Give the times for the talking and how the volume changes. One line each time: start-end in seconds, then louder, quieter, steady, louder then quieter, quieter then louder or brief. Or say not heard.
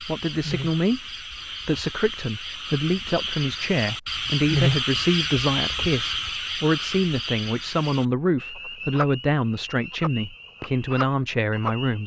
0.0-1.1 brief
1.6-12.0 steady.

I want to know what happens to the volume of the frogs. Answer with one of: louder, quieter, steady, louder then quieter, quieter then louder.
louder then quieter.